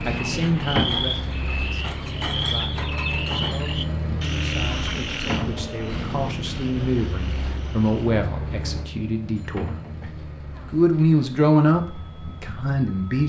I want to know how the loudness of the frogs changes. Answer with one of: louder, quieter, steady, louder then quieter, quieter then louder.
quieter.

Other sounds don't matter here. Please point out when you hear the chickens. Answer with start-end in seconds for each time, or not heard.
0.0-3.8.